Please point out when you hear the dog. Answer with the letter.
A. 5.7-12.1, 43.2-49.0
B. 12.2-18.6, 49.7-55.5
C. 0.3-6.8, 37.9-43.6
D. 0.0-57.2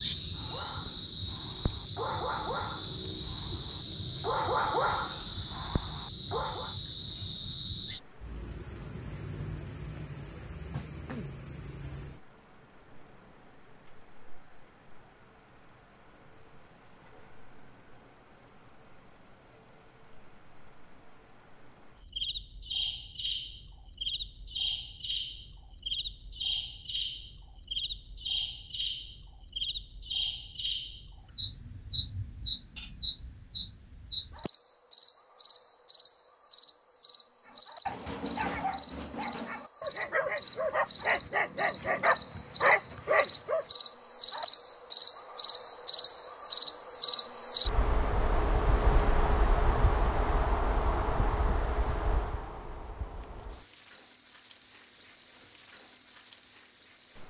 C.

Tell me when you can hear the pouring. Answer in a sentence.
You can't hear the pouring here.